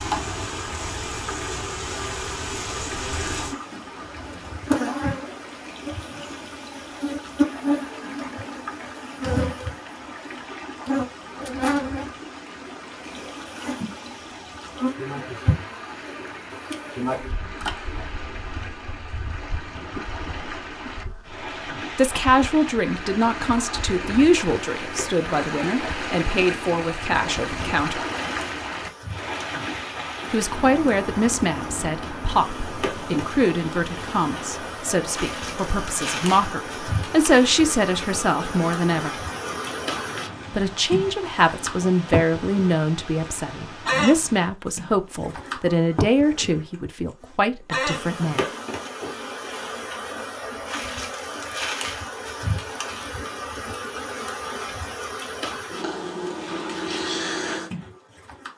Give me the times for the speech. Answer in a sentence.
The speech can be heard from 21.9 to 28.0 s, from 30.3 to 39.1 s and from 40.5 to 48.5 s.